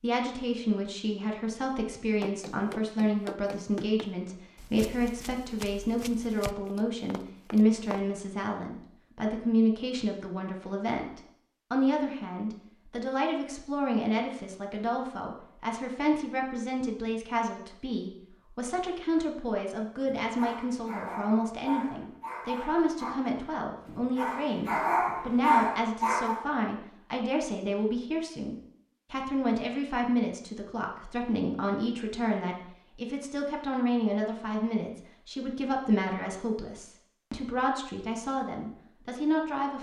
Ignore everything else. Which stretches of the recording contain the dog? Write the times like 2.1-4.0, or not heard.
20.1-26.4.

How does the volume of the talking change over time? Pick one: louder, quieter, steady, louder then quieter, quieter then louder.
steady.